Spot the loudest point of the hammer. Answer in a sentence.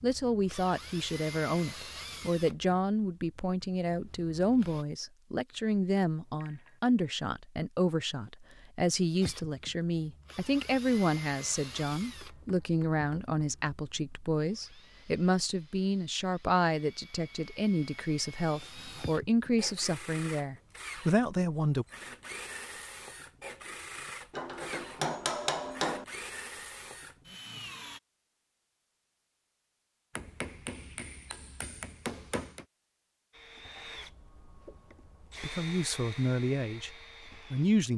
The volume of the hammer peaks at 25 seconds.